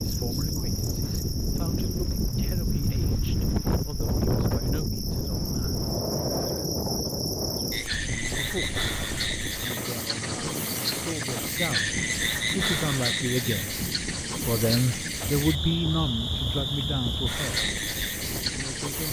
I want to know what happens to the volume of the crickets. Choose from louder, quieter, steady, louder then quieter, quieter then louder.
louder.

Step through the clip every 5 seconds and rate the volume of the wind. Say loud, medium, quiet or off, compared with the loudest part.
loud, loud, medium, medium.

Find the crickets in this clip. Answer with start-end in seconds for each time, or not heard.
0.0-19.0.